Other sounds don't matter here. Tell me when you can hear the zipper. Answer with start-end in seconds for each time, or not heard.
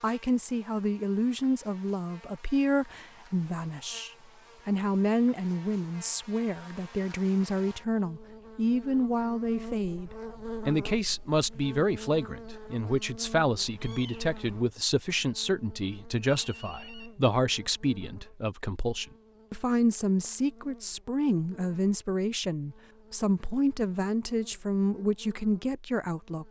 not heard.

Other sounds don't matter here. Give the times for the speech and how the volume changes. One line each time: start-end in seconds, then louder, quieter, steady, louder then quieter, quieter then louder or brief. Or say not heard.
0.0-26.4 steady.